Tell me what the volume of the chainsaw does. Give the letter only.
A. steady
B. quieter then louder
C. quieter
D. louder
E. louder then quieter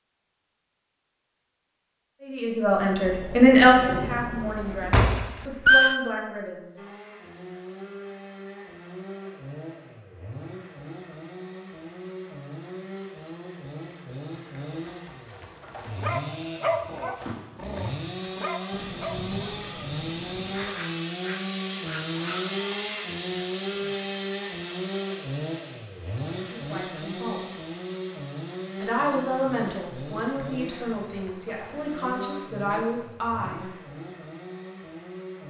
E.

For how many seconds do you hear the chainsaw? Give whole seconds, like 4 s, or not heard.
29 s.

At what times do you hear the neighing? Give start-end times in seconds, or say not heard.
4.9-6.0.